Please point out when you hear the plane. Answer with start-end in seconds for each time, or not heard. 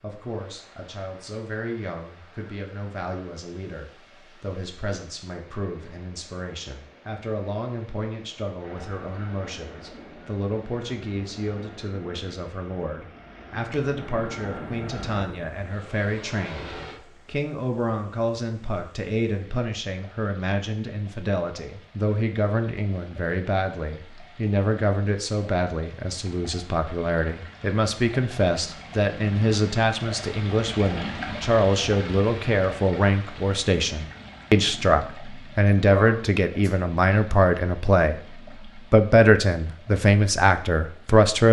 8.6-17.0.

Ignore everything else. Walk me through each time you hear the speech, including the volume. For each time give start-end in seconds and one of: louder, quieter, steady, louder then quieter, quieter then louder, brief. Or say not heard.
0.0-41.4 louder.